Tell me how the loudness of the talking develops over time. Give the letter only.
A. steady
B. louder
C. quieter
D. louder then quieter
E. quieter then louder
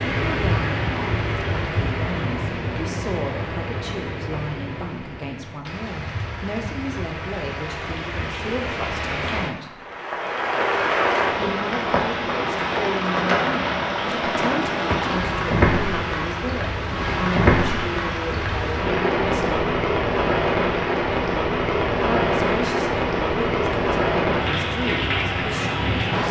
A.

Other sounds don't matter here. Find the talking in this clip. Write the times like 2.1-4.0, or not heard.
0.1-9.8, 11.3-19.6, 22.0-26.2.